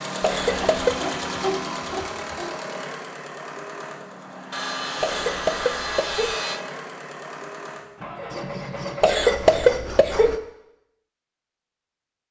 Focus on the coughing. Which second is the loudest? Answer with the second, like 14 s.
10 s.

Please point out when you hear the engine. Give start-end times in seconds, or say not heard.
0.0-10.3.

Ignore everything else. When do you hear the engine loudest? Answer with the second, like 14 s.
1 s.